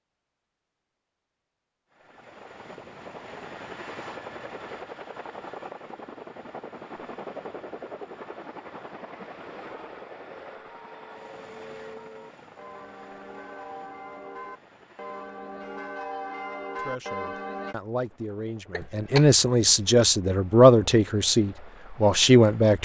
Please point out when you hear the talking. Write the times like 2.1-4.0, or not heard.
16.8-22.8.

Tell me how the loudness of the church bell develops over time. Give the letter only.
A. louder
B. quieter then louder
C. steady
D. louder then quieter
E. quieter
A.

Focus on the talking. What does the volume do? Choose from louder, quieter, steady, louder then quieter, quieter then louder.
louder.